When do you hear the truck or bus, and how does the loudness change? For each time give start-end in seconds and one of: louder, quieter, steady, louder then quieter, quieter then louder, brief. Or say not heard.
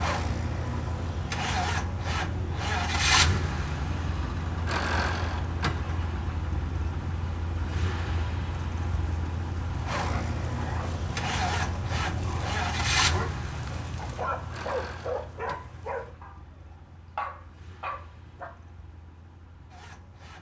0.0-20.3 quieter.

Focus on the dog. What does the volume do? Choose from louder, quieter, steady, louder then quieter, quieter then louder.
louder.